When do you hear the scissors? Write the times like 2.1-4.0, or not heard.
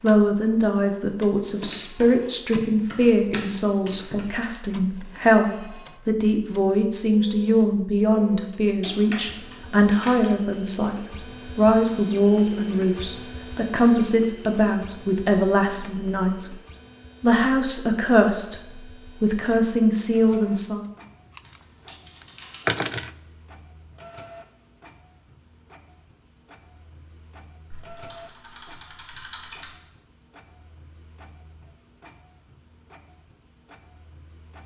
21.0-23.1.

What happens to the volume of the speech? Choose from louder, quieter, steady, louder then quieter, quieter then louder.
steady.